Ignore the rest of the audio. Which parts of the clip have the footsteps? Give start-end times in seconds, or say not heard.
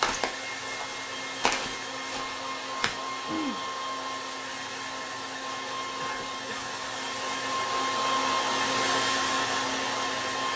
0.0-3.0.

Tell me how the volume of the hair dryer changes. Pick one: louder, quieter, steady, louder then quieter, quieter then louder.
louder.